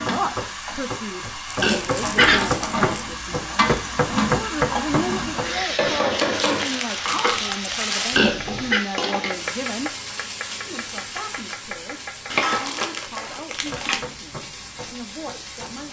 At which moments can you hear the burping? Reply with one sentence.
The burping can be heard from 1.6 to 2.4 s and from 8.1 to 8.8 s.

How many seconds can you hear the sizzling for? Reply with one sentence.
The sizzling can be heard for 16 seconds in total.